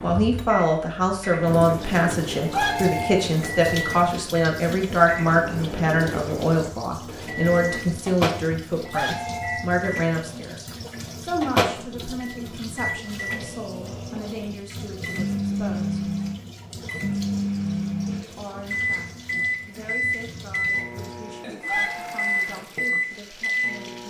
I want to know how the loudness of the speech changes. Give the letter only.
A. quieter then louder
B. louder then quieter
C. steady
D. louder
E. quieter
E.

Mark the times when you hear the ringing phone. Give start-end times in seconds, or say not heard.
2.5-3.3, 8.8-9.7, 21.6-22.4.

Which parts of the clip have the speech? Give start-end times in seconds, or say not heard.
0.0-16.1, 18.2-24.0.